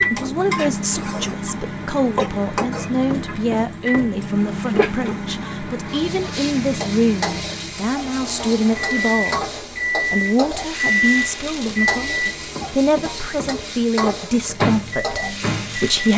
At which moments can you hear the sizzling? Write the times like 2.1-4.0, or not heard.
0.0-16.1.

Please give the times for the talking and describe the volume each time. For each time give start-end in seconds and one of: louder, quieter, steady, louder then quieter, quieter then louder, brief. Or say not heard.
0.1-16.1 steady.